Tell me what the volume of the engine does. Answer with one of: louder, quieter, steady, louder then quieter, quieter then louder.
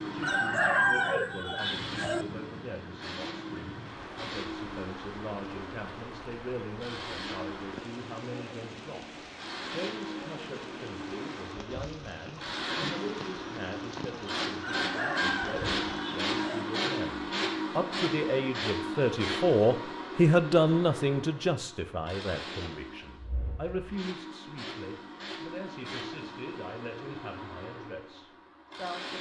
louder then quieter.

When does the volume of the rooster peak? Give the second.
1 s.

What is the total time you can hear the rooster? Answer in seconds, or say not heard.
4 s.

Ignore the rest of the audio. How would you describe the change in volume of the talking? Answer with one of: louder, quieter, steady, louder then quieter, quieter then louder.
louder then quieter.